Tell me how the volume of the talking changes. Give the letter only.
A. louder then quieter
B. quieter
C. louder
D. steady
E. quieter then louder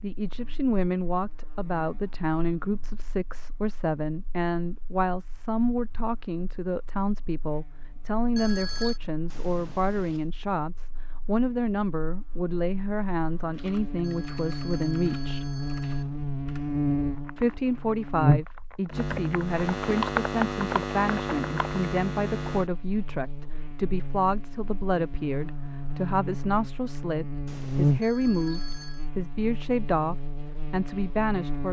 D.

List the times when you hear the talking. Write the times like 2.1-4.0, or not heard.
0.0-15.5, 17.4-31.6.